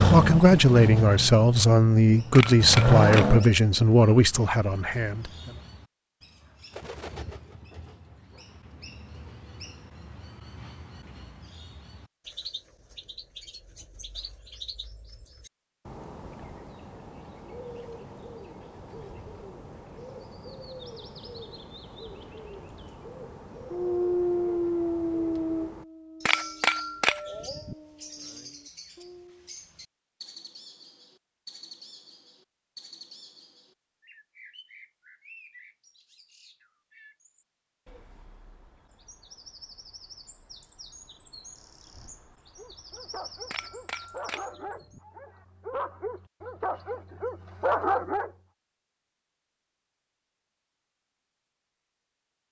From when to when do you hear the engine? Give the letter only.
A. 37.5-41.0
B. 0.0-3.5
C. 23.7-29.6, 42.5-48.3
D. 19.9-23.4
B.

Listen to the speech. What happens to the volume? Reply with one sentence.
The volume of the speech goes down.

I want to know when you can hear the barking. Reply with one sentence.
The barking can be heard from 23.7 to 29.6 s and from 42.5 to 48.3 s.